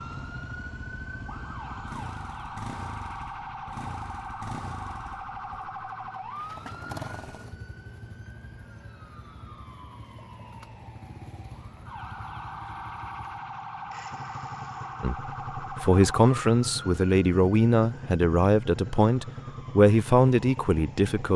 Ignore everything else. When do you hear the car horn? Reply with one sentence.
The car horn can't be heard in this clip.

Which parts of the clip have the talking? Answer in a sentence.
You can hear the talking from 15.0 to 21.3 s.